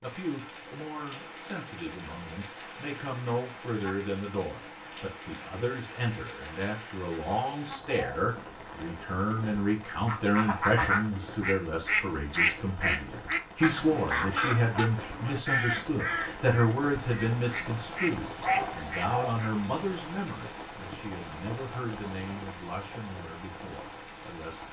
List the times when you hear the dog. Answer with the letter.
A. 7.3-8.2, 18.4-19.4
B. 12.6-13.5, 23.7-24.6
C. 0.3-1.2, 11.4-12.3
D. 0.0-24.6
A.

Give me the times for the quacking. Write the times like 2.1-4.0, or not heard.
9.8-19.5.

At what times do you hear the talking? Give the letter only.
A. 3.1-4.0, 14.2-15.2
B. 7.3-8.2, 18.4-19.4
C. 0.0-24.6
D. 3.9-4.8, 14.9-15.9
C.